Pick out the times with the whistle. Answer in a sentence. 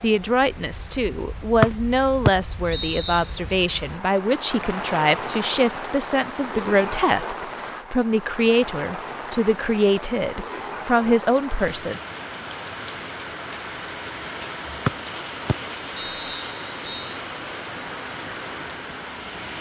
You can hear the whistle from 1.6 to 3.2 s and from 14.8 to 17.1 s.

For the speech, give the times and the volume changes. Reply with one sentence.
You can hear the speech from 0.0 to 12.0 s, at a steady volume.